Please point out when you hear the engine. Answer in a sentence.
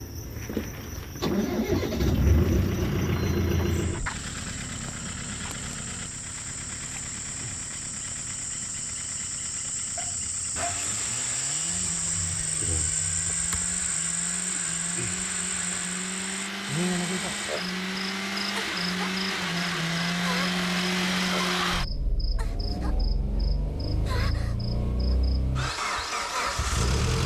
You can hear the engine from 0.0 to 27.2 s.